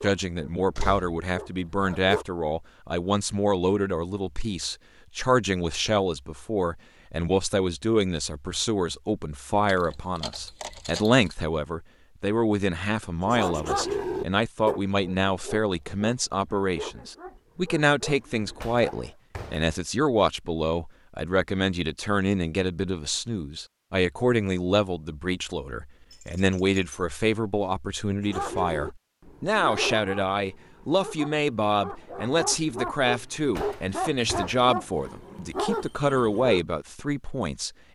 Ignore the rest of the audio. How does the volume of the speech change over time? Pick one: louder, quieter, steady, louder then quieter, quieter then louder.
steady.